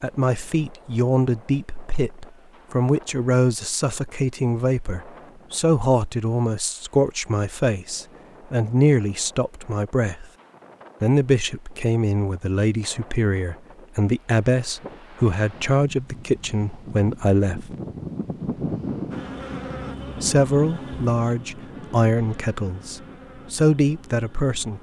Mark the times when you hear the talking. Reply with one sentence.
The talking can be heard from 0.0 to 10.2 s, from 11.0 to 17.7 s and from 20.1 to 24.7 s.